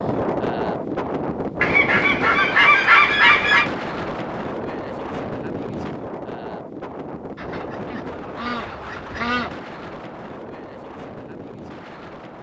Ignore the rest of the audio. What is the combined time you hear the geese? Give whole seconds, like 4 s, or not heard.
4 s.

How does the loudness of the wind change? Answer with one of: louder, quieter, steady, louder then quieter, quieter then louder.
quieter.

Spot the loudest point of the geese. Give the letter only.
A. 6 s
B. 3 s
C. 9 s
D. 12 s
B.